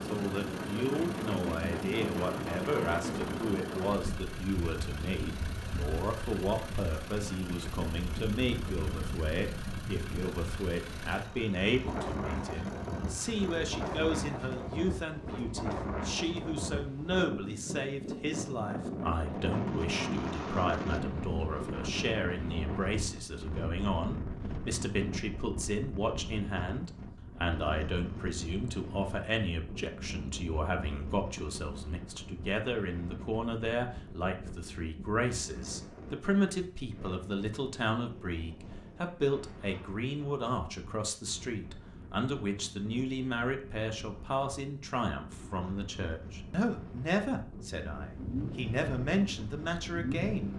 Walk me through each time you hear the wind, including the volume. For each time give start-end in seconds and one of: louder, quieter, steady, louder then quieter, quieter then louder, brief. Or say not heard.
0.0-50.5 quieter.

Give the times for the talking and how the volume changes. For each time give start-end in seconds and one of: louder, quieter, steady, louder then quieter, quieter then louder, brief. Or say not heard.
0.0-50.5 steady.